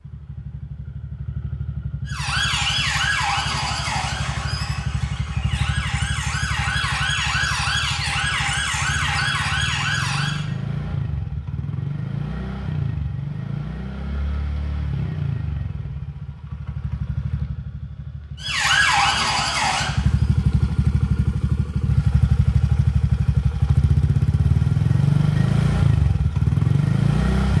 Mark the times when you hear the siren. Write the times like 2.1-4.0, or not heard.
2.0-10.4, 18.4-20.3.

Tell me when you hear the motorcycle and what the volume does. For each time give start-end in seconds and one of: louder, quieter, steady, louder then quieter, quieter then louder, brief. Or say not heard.
0.0-27.5 louder.